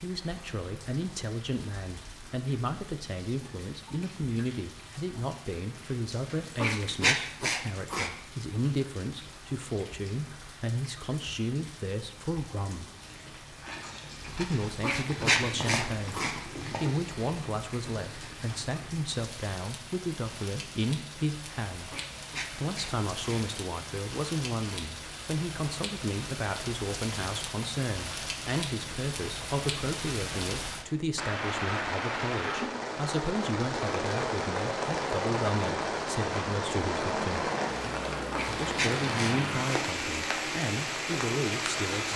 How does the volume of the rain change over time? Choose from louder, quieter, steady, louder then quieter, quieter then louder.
louder.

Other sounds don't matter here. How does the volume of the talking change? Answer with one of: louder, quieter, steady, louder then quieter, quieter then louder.
steady.